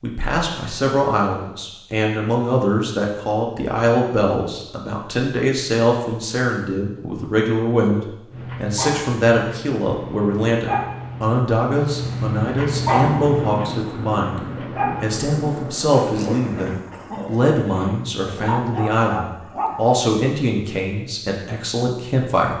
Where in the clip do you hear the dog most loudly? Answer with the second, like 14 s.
13 s.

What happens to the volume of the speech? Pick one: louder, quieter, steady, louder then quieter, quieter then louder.
steady.